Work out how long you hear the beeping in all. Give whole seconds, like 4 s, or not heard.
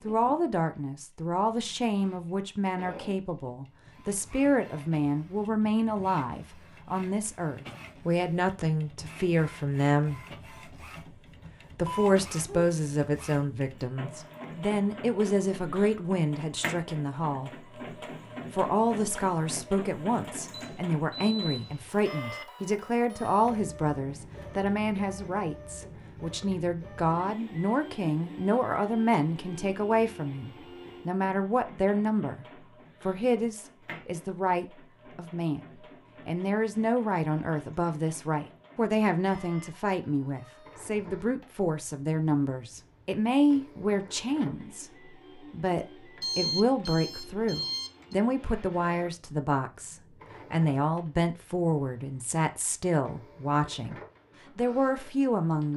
4 s.